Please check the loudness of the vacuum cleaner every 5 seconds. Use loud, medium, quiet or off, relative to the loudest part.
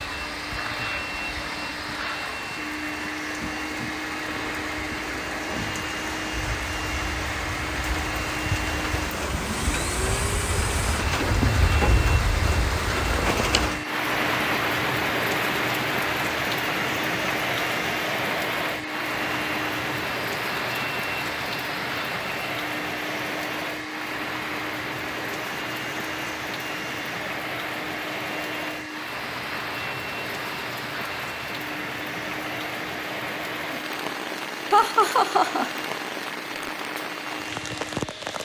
loud, loud, loud, loud, loud, loud, medium, medium.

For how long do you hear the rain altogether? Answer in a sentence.
The rain can be heard for 38 seconds in total.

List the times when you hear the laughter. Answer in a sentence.
The laughter can be heard from 34.7 to 35.8 s.